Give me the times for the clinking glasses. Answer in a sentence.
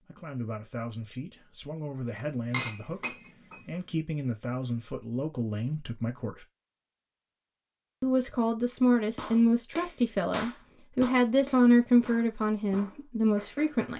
You can hear the clinking glasses from 2.5 to 3.6 s.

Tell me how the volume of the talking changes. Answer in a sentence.
The volume of the talking goes up.